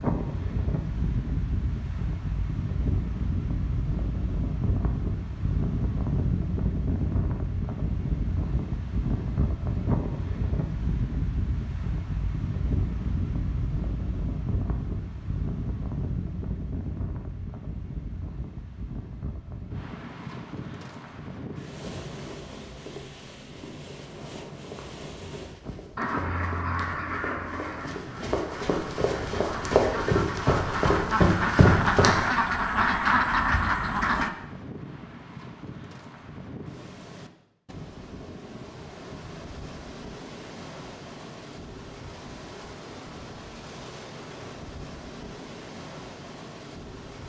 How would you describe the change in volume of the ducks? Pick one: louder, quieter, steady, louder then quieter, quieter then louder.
quieter then louder.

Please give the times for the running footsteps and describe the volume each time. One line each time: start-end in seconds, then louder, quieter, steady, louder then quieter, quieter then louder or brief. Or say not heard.
21.7-32.3 louder.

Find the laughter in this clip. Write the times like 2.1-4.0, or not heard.
not heard.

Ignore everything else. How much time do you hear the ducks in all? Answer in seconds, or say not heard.
8 s.